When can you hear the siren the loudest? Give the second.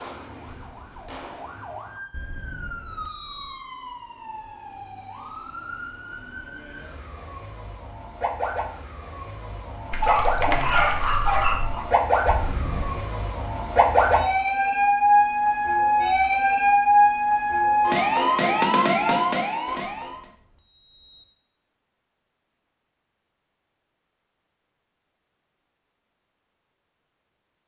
17 s.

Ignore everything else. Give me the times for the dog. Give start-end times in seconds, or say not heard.
9.9-11.8.